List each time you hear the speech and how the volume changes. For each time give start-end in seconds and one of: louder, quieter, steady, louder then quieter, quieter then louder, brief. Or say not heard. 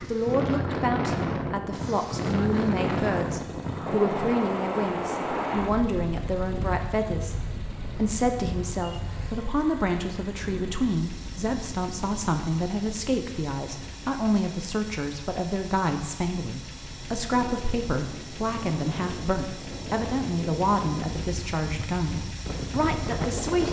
0.1-23.6 steady.